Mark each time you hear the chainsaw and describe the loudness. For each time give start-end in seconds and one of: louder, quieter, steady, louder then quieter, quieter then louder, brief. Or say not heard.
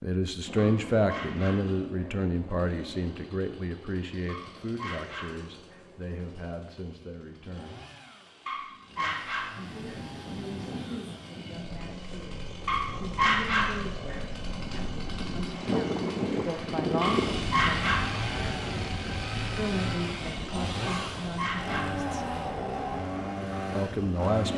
0.4-24.5 quieter then louder.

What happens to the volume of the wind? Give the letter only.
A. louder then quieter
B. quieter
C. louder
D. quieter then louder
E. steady
A.